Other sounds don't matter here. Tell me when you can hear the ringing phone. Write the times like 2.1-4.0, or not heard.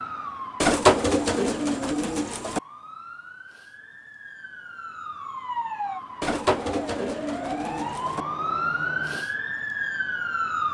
not heard.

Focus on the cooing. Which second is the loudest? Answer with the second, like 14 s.
1 s.